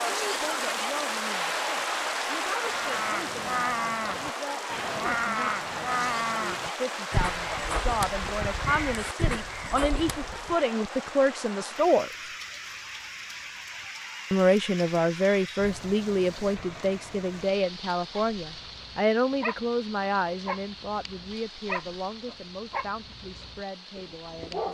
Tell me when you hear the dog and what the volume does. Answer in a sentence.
The dog can be heard from 18.1 to 24.6 s, getting quieter.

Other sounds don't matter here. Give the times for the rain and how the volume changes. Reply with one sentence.
You can hear the rain from 0.0 to 24.6 s, getting quieter.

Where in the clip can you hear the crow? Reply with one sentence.
The crow can be heard from 2.6 to 10.6 s.